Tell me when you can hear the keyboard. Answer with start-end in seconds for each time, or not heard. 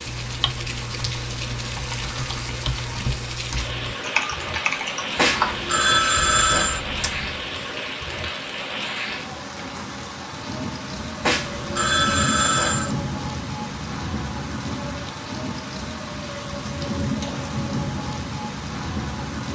0.1-7.4.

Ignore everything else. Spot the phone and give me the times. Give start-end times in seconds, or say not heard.
5.2-6.8, 11.2-12.9.